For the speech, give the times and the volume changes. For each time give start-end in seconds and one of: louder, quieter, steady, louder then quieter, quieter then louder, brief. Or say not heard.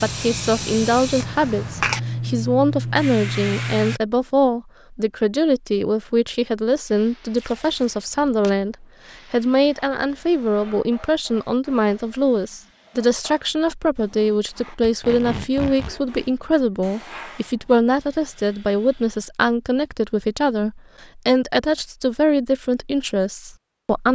0.0-24.0 steady.